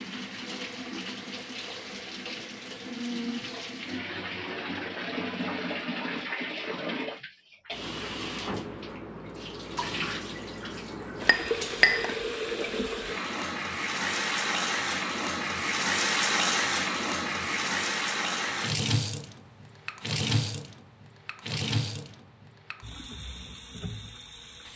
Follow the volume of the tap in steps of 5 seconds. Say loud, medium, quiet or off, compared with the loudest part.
medium, medium, loud, loud, medium.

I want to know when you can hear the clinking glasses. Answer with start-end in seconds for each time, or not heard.
11.2-12.2.